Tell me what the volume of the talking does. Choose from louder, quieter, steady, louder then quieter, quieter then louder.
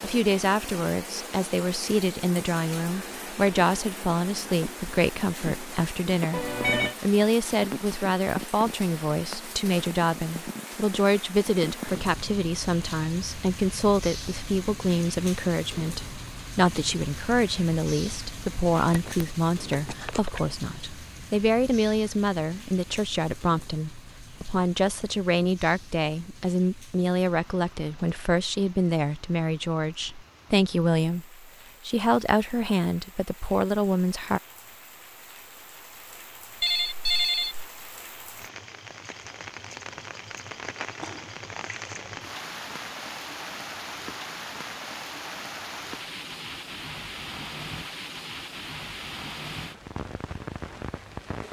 steady.